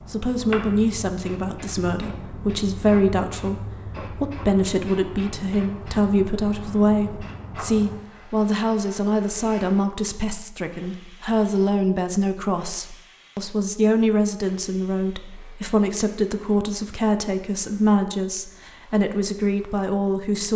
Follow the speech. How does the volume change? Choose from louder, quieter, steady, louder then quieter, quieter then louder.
steady.